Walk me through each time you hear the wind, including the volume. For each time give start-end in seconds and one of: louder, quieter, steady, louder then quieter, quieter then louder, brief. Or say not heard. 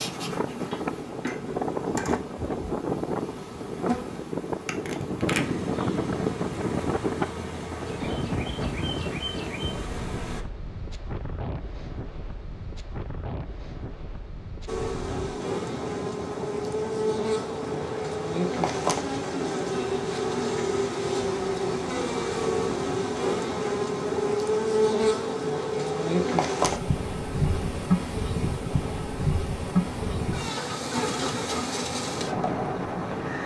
0.0-33.4 quieter.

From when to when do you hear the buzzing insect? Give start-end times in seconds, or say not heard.
0.0-10.4, 14.7-33.4.